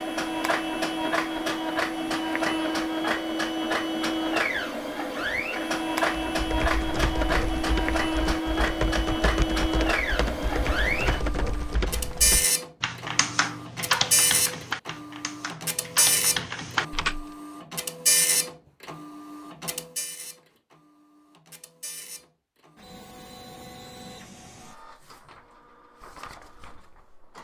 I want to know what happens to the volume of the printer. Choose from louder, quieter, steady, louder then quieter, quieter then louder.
quieter.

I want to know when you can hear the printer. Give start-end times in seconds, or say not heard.
0.0-27.3.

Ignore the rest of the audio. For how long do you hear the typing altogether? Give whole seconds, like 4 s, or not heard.
11 s.